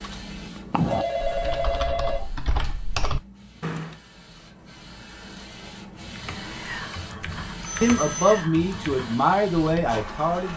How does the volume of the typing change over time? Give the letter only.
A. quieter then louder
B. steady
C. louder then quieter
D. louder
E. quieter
E.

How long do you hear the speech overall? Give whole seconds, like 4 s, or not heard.
3 s.